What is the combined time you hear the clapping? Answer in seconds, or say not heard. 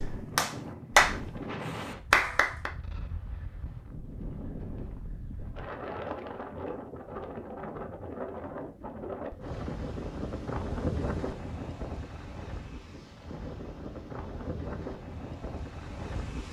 3 s.